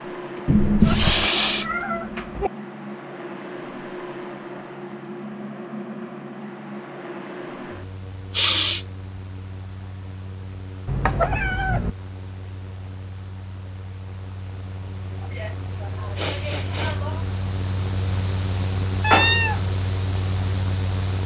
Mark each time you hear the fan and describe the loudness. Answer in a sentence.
The fan can be heard from 0.0 to 21.2 s, getting quieter then louder.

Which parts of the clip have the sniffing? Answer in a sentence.
You can hear the sniffing from 0.3 to 1.7 s, from 8.3 to 8.8 s and from 15.2 to 17.2 s.